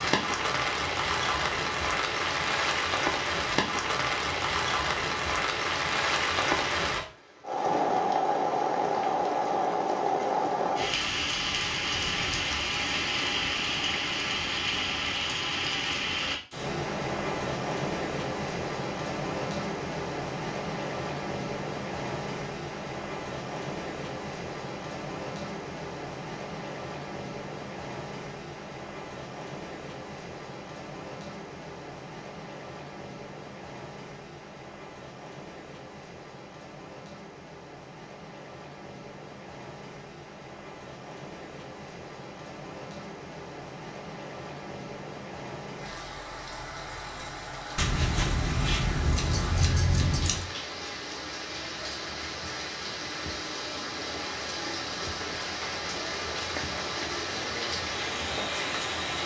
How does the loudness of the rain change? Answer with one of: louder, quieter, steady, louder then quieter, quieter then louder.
quieter then louder.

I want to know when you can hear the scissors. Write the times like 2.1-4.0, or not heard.
47.8-50.5.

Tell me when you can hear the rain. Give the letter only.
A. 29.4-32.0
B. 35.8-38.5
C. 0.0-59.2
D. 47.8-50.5
C.